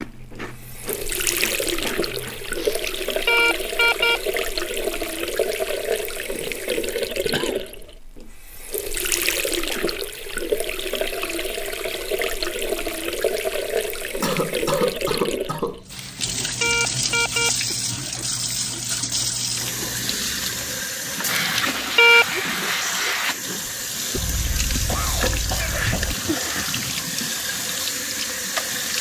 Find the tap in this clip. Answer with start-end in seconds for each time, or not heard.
0.0-28.9.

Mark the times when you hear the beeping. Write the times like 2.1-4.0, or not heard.
2.5-4.2, 15.9-17.5, 21.2-22.2.